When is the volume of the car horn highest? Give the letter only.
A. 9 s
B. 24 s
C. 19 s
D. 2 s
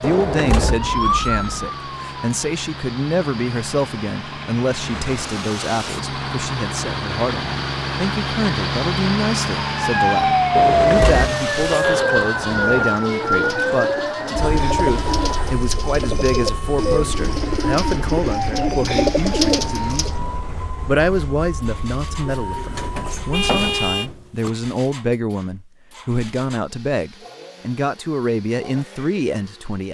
B.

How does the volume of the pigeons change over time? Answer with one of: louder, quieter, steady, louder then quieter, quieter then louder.
louder.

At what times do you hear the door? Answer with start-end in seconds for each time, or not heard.
0.0-0.9, 10.6-12.8, 22.3-24.5.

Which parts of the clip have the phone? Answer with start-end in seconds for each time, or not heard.
not heard.